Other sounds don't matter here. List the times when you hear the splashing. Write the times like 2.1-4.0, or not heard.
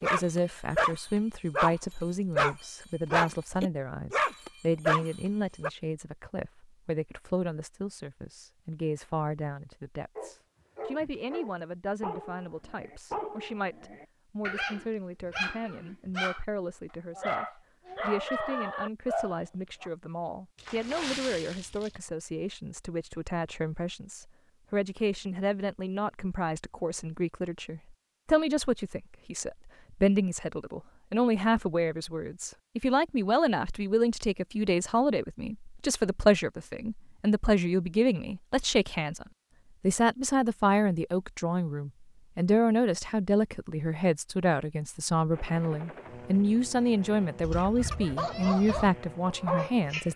20.6-22.0.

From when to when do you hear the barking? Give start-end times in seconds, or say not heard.
0.0-1.8, 2.4-5.7, 10.2-16.4, 17.1-19.9, 47.4-50.1.